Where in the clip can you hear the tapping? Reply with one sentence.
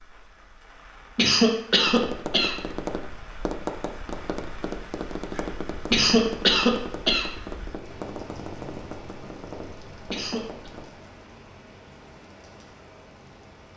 You can hear the tapping from 1.9 to 10.8 s.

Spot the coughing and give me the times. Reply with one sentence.
You can hear the coughing from 1.1 to 2.6 s, from 5.9 to 7.3 s and from 10.1 to 10.7 s.